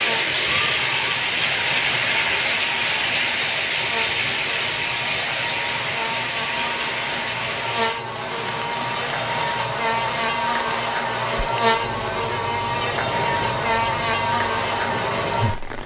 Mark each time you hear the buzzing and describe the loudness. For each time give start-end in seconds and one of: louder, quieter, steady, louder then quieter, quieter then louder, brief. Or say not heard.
0.0-15.8 louder.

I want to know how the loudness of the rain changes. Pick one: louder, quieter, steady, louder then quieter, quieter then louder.
quieter.